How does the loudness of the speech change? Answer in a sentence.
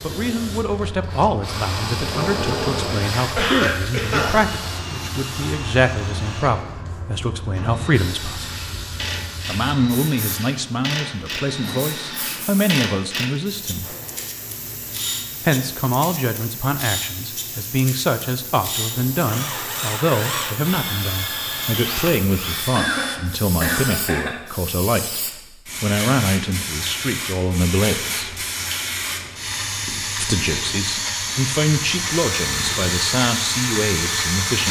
The volume of the speech stays about the same.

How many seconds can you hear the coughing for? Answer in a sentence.
The coughing can be heard for 3 seconds in total.